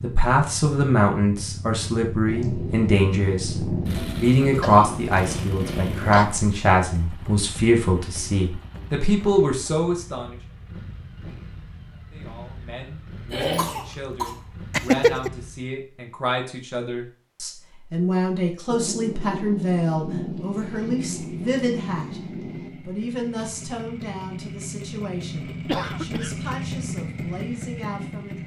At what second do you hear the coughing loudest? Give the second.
15 s.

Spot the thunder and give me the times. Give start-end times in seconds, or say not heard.
2.2-6.2, 18.6-22.7.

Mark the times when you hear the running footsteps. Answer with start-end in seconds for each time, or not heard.
not heard.